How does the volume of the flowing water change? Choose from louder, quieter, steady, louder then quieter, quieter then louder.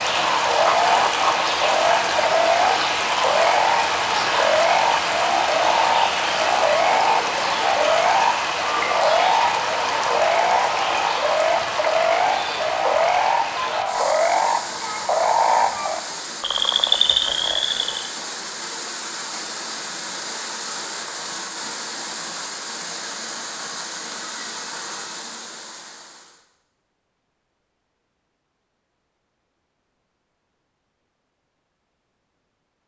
quieter.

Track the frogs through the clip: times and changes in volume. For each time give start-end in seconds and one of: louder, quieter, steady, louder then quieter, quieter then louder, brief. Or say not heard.
0.0-18.1 steady.